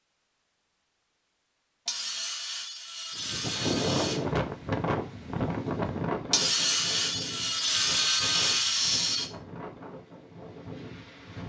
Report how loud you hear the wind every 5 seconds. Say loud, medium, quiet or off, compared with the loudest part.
loud, medium, quiet.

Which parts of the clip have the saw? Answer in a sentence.
The saw can be heard from 1.9 to 4.2 s and from 6.3 to 9.3 s.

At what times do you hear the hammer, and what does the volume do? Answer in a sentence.
The hammer can't be heard in this clip.